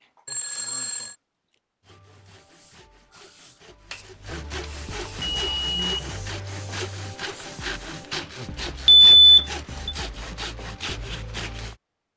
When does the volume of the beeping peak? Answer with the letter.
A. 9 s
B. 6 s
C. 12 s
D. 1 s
A.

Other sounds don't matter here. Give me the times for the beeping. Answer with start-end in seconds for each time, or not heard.
0.2-1.1, 5.3-6.2, 8.8-9.9.